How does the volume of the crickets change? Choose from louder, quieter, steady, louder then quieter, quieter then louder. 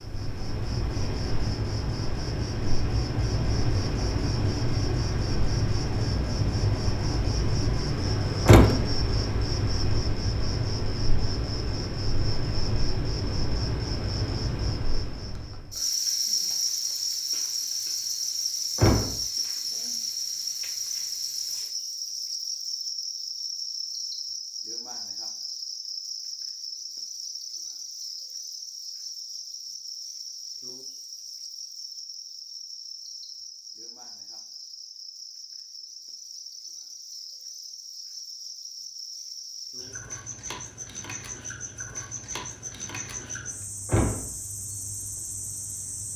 quieter.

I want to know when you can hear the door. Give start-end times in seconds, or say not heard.
8.4-8.8, 18.8-19.2, 43.9-44.3.